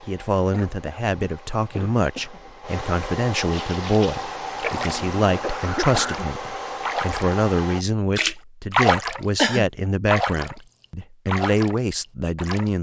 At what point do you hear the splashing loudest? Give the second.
9 s.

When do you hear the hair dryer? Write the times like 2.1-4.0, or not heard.
0.0-7.8.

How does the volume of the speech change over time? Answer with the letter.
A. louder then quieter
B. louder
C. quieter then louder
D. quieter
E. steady
E.